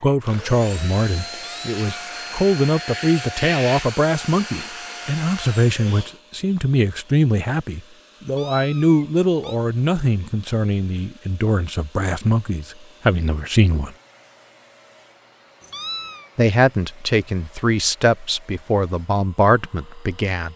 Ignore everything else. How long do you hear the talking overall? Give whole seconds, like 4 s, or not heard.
18 s.